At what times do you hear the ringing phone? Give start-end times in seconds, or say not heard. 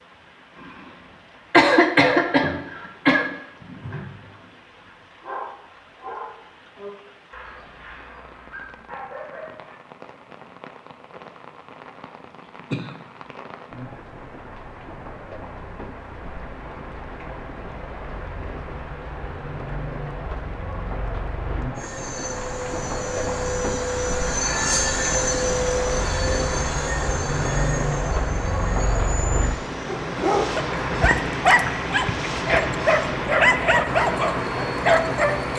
not heard.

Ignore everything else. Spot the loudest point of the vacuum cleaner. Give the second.
25 s.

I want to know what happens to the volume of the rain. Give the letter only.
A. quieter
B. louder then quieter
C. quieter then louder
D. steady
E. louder
E.